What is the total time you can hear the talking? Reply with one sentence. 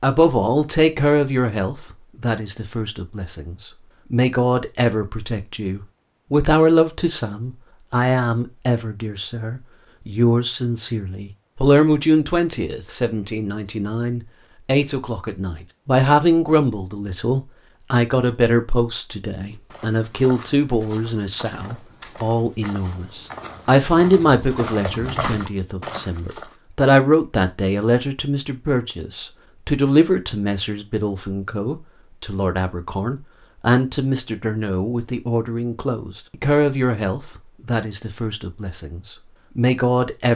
You can hear the talking for 40 seconds altogether.